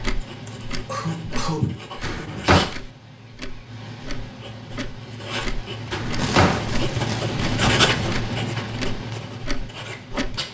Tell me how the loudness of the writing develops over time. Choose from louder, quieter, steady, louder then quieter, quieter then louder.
louder then quieter.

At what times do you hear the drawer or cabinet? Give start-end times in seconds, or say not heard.
2.0-2.7, 5.9-6.7.